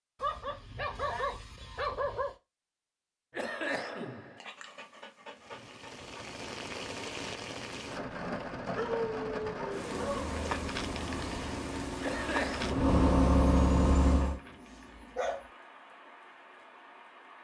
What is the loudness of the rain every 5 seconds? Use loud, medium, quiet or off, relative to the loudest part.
off, loud, loud, quiet.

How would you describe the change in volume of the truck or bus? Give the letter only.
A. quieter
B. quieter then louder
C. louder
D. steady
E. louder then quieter
C.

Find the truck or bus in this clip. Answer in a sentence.
The truck or bus can be heard from 9.8 to 14.4 s.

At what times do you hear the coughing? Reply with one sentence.
The coughing can be heard from 3.3 to 4.4 s and from 12.0 to 12.8 s.